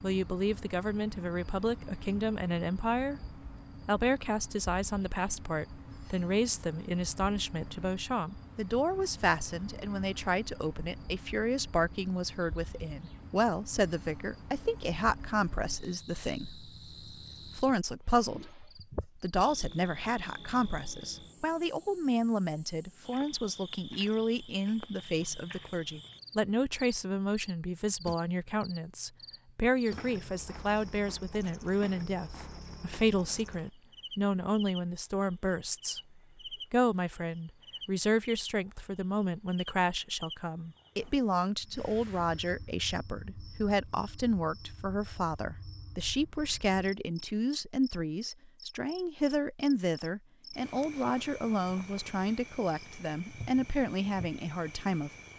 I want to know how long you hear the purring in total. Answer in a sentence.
You can't hear the purring here.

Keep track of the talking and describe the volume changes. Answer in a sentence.
The volume of the talking stays about the same.